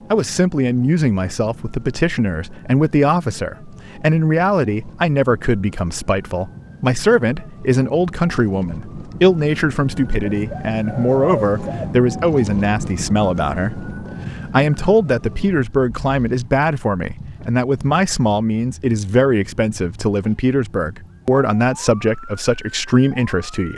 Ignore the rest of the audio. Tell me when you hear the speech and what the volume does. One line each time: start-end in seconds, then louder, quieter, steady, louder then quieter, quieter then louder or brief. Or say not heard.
0.1-23.7 steady.